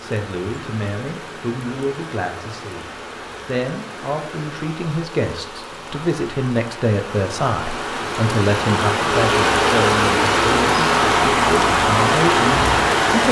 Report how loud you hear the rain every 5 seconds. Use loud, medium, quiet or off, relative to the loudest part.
quiet, medium, loud.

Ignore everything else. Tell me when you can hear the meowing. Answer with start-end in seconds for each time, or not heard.
not heard.